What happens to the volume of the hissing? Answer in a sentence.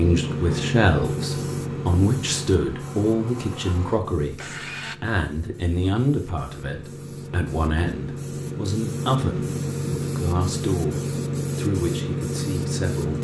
The loudness of the hissing goes down, then up.